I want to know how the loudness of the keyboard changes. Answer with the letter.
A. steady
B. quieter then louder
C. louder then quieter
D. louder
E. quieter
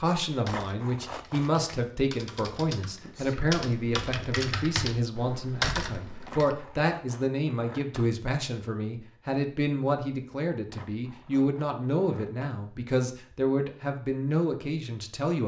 D.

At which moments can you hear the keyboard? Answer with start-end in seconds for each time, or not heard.
0.2-6.5.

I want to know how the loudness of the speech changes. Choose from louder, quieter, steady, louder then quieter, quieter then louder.
steady.